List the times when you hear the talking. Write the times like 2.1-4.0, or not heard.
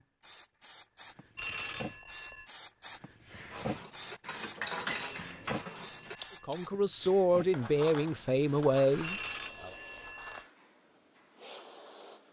6.5-9.7.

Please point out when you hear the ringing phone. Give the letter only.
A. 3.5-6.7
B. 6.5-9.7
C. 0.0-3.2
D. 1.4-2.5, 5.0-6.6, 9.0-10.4
D.